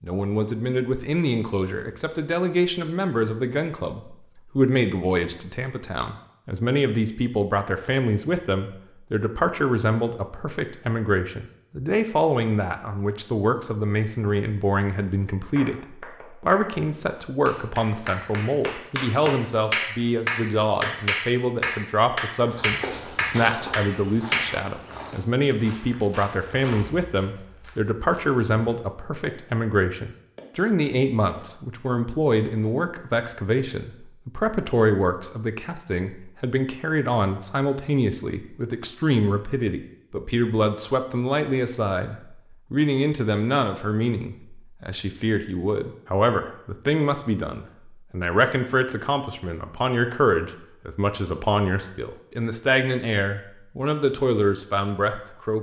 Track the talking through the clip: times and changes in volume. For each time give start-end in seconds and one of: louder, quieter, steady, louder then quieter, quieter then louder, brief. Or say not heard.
0.0-55.5 steady.